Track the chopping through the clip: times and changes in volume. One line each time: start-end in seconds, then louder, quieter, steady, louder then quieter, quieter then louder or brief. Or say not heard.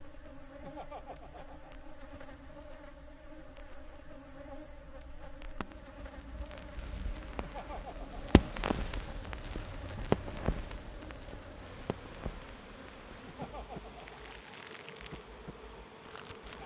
not heard.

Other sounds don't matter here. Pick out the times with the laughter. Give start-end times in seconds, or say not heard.
0.6-1.9, 7.3-8.4, 13.2-14.3.